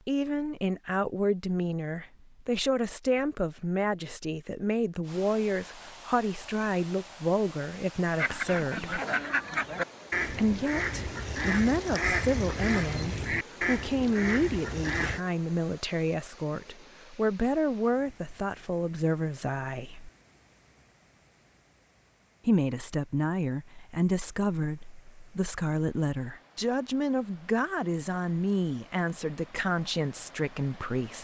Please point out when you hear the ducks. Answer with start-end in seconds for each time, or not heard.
8.2-15.2.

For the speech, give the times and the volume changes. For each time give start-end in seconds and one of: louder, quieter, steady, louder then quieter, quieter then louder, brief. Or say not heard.
0.1-9.0 steady
10.3-20.1 steady
22.4-31.1 steady.